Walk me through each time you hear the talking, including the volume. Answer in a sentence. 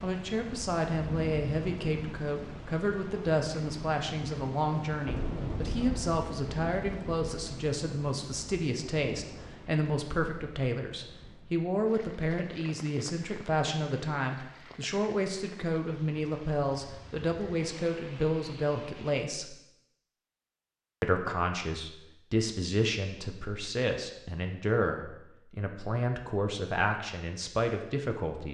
The talking can be heard from 0.0 to 19.6 s, at a steady volume; and from 21.0 to 28.5 s, at a steady volume.